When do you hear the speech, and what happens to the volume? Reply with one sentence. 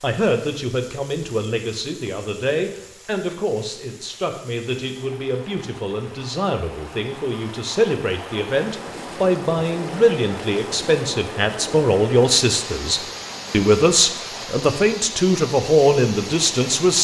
The speech can be heard from 0.0 to 17.0 s, getting louder.